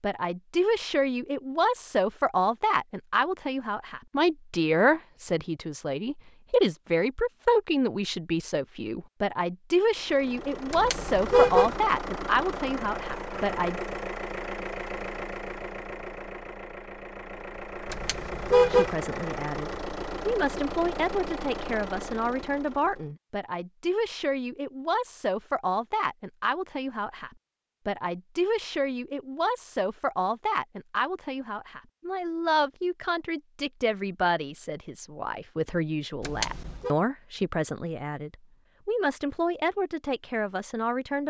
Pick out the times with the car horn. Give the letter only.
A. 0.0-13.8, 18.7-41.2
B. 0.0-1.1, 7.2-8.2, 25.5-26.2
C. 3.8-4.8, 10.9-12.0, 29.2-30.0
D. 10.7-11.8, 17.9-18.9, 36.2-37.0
D.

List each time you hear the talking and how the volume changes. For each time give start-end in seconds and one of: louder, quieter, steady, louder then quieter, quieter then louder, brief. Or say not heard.
0.0-13.8 steady
18.7-41.2 steady.